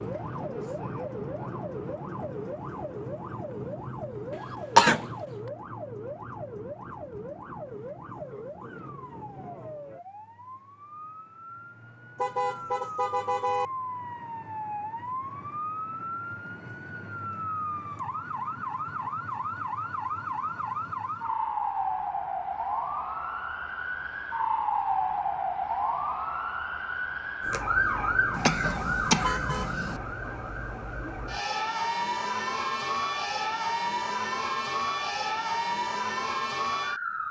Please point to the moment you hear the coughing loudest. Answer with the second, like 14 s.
5 s.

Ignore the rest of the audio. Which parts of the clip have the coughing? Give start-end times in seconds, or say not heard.
4.3-5.1, 28.3-30.0.